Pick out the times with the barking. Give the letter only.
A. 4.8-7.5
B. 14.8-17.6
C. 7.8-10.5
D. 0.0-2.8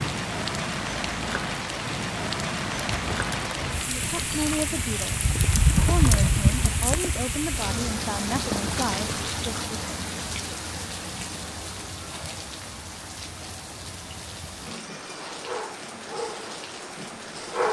B.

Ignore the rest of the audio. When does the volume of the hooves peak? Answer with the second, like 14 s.
6 s.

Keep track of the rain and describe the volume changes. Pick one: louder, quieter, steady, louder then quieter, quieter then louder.
quieter.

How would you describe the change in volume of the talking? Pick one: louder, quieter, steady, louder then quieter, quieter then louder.
steady.